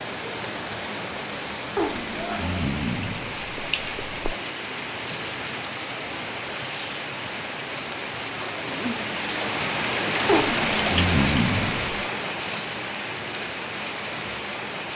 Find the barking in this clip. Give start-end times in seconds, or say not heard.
1.8-4.3, 10.2-12.1.